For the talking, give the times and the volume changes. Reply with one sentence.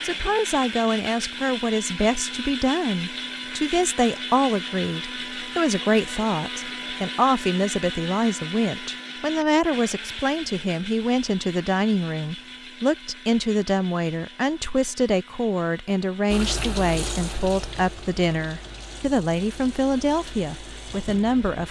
The talking can be heard from 0.0 to 21.6 s, at a steady volume.